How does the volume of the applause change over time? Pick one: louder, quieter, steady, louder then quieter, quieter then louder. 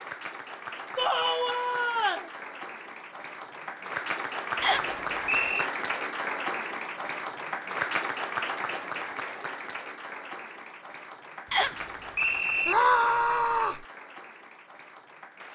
louder then quieter.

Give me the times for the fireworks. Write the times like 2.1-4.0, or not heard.
not heard.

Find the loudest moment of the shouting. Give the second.
13 s.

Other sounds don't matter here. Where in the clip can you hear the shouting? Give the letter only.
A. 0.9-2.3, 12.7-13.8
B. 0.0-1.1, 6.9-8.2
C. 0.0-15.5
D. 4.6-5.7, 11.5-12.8
A.